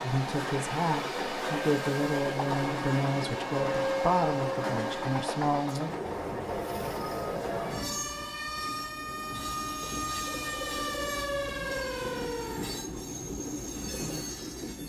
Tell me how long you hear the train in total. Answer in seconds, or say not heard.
15 s.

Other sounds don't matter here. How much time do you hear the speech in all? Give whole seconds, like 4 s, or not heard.
6 s.